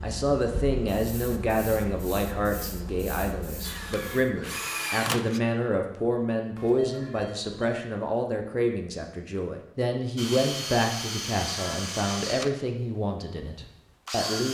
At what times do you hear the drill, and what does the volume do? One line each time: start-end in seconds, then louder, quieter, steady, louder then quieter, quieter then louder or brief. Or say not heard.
3.6-5.4 brief
10.2-14.4 quieter then louder.